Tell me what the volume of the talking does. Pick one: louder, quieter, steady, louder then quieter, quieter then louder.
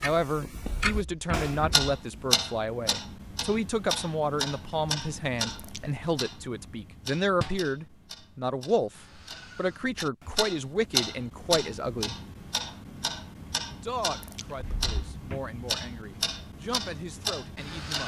quieter.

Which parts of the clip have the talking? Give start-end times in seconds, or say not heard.
0.0-12.2, 13.7-18.0.